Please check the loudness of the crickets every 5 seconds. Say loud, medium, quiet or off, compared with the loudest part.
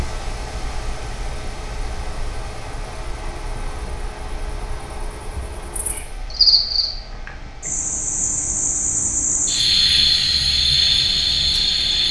quiet, loud, loud.